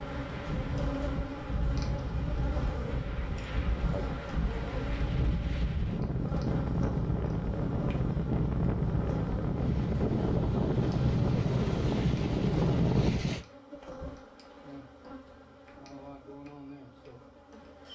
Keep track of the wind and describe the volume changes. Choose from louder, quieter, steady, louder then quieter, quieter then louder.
louder.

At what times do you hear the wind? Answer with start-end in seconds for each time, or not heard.
0.0-13.4.